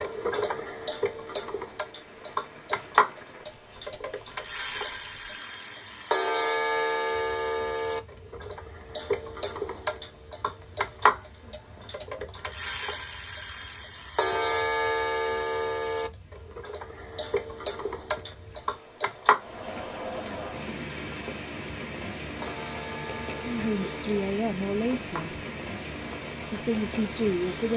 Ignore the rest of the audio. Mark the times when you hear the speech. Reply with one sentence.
The speech can be heard from 23.4 to 25.4 s and from 26.4 to 27.7 s.